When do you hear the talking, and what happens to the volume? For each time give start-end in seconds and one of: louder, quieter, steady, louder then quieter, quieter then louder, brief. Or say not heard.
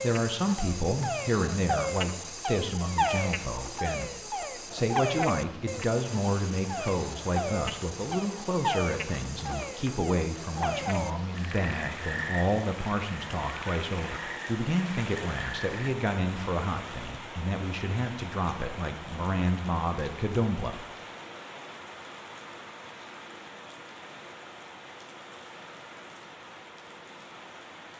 0.0-20.9 steady.